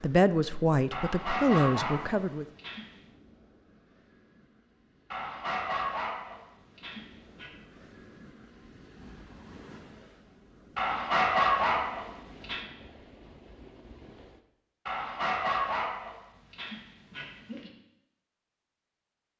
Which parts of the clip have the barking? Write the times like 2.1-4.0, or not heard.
0.9-3.0, 5.1-7.5, 10.8-12.7, 14.8-17.7.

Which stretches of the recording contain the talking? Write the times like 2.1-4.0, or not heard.
0.0-2.5.